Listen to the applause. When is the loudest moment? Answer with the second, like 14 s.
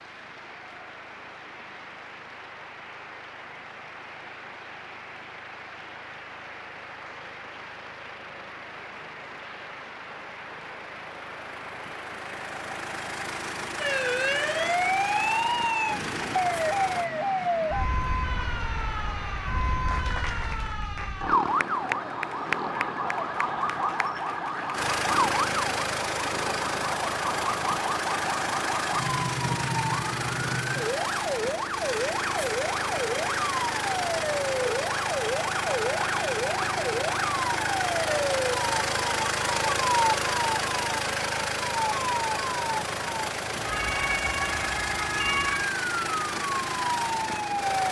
22 s.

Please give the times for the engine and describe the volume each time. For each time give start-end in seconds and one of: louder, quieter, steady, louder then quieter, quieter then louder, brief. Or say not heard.
0.0-17.1 louder
24.7-47.8 steady.